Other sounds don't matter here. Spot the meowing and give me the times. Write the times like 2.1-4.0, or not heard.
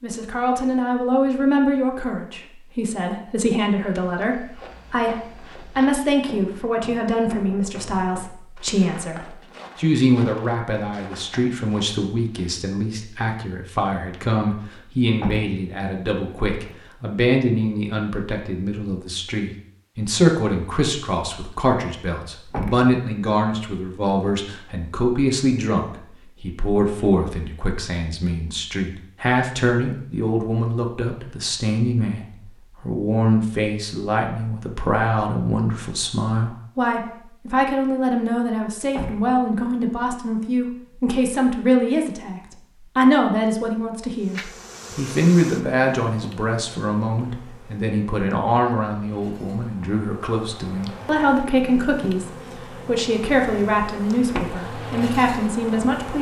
44.3-45.0.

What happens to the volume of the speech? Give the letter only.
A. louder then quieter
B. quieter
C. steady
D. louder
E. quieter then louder
C.